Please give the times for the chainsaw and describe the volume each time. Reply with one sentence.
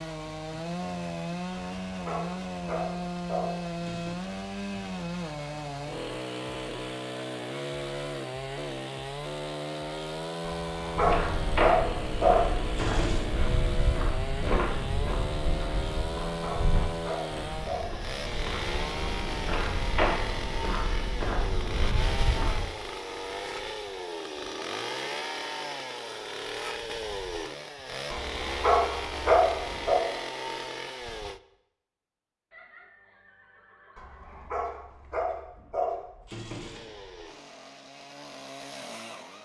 The chainsaw can be heard from 0.0 to 31.4 s, at a steady volume; and briefly from 36.5 to 39.4 s.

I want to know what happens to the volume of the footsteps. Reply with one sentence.
The loudness of the footsteps goes down, then up.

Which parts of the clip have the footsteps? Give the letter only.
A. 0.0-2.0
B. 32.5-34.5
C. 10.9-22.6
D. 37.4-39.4
C.